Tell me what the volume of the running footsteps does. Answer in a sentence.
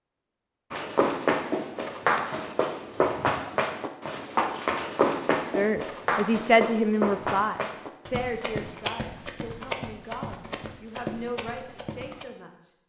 The loudness of the running footsteps goes down.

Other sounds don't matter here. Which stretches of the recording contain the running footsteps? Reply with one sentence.
The running footsteps can be heard from 0.7 to 12.2 s.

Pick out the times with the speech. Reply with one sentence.
The speech can be heard from 5.3 to 12.5 s.